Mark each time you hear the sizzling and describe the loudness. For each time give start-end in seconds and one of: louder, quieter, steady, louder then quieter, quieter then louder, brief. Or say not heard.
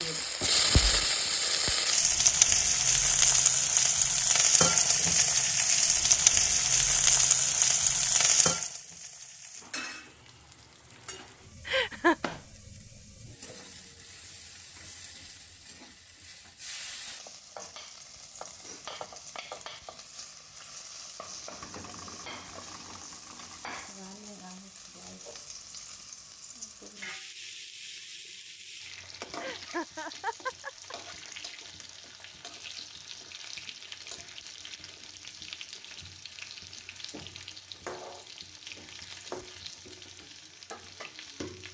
0.0-41.7 quieter.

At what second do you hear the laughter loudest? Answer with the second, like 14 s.
12 s.